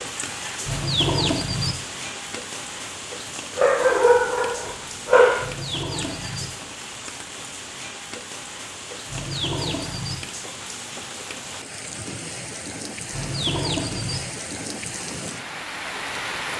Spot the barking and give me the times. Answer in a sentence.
The barking can be heard from 3.5 to 5.5 s.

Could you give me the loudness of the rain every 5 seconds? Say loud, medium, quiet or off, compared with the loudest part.
loud, medium, loud, loud.